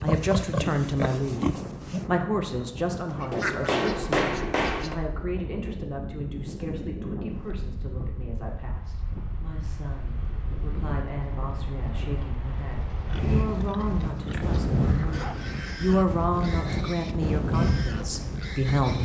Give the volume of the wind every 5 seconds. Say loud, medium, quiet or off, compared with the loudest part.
medium, medium, loud, loud.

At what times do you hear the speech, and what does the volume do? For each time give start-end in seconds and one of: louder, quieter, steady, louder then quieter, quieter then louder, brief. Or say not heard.
0.0-19.0 quieter then louder.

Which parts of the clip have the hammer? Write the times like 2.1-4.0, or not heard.
3.3-5.0.